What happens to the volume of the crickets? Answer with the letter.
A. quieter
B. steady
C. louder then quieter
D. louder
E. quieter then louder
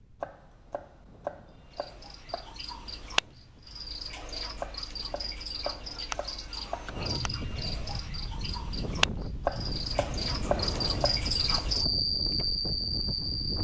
D.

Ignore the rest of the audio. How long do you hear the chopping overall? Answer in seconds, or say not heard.
7 s.